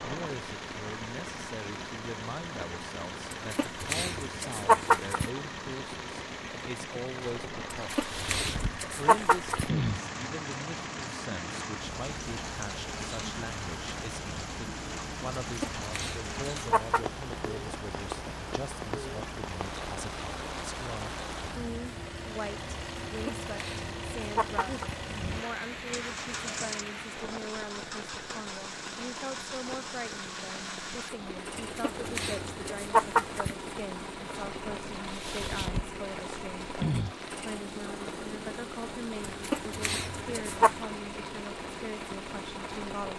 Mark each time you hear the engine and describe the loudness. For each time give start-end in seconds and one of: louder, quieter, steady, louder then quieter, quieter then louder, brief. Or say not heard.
0.0-43.1 steady.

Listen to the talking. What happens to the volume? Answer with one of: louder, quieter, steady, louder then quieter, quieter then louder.
steady.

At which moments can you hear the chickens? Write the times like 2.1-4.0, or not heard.
3.3-5.3, 7.7-9.7, 15.5-17.1, 23.1-24.9, 31.6-33.5, 39.2-40.9.